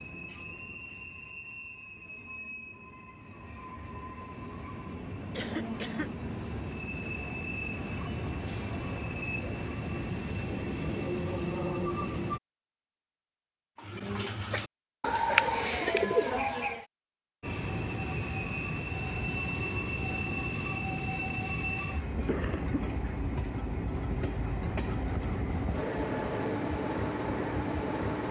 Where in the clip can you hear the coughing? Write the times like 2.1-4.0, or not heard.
5.3-6.1, 15.2-16.1, 22.2-23.2.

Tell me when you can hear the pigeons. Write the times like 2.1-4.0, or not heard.
13.8-16.9.